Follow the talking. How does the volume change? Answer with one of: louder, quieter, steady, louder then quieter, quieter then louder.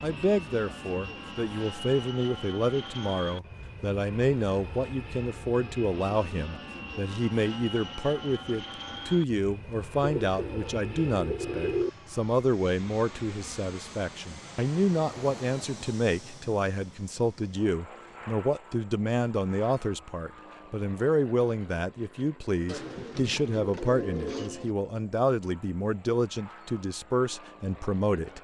steady.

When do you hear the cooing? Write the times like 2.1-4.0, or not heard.
10.0-11.9, 22.6-24.8.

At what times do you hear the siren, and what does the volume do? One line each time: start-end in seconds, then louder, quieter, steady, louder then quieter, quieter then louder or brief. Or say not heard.
not heard.